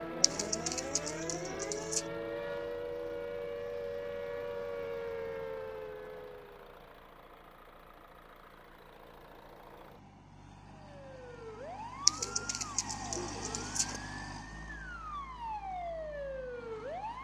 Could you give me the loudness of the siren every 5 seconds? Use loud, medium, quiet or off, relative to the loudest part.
loud, loud, medium, loud.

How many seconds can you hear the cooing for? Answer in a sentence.
The cooing can be heard for 4 seconds in total.